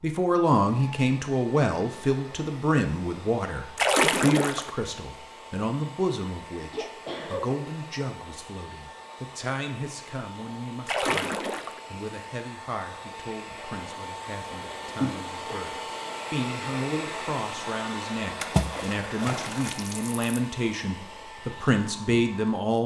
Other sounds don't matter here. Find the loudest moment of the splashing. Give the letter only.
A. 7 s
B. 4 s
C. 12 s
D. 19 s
B.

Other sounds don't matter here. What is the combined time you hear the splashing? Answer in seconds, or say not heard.
4 s.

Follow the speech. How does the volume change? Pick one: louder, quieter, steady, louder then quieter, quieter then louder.
quieter then louder.